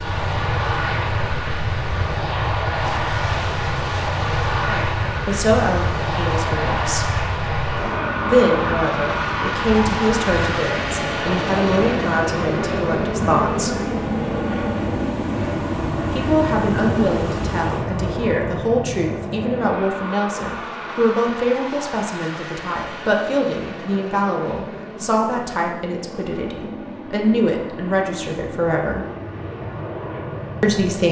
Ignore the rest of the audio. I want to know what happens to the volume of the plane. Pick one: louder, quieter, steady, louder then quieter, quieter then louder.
quieter.